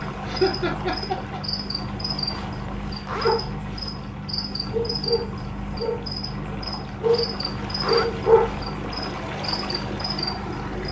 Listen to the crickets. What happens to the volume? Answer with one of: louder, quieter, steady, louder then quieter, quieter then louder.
steady.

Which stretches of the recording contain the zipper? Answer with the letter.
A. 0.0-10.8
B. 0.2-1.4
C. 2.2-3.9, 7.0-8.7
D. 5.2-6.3
C.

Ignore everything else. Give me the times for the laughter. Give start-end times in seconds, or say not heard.
0.2-1.4.